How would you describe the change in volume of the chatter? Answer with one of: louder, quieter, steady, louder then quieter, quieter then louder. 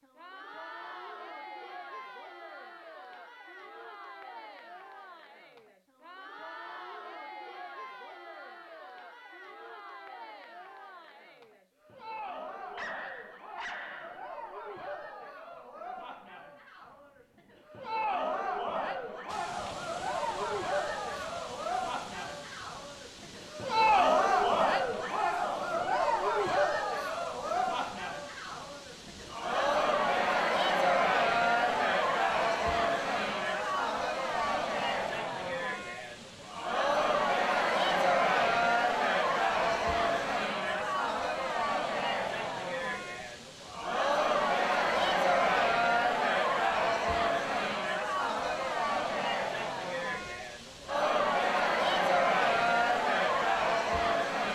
louder.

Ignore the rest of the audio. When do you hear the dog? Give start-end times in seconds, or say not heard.
12.8-14.2.